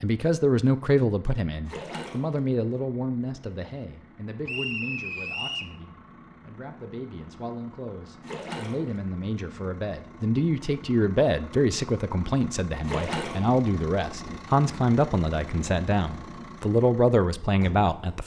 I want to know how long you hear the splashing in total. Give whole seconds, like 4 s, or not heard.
2 s.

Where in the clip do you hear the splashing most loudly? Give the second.
13 s.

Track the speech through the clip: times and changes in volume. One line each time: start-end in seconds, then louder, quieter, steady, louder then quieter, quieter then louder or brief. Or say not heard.
0.0-18.2 quieter then louder.